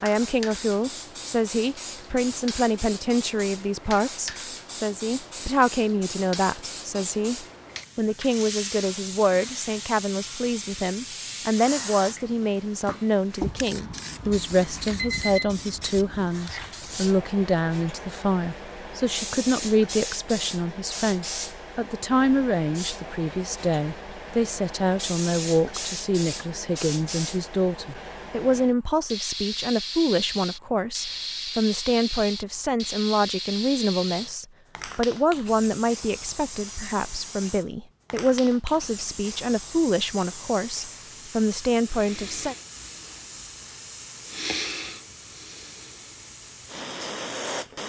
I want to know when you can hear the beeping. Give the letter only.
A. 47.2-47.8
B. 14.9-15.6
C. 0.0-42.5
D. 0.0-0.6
B.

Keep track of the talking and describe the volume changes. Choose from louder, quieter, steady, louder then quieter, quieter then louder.
steady.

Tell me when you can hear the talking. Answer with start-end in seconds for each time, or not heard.
0.0-42.5.